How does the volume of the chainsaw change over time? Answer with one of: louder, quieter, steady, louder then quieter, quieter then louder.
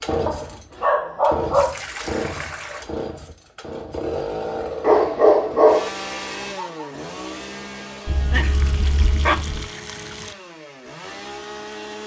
quieter.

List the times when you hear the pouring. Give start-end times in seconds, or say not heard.
1.5-2.9, 8.3-10.3.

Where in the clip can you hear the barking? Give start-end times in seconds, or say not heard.
0.2-1.8, 4.8-5.9, 8.1-9.7.